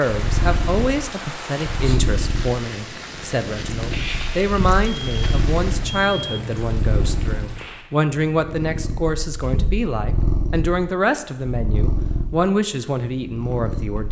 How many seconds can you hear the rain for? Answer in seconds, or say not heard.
8 s.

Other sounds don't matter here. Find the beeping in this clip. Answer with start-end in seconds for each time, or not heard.
4.8-6.5.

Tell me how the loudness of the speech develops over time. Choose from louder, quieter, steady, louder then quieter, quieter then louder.
steady.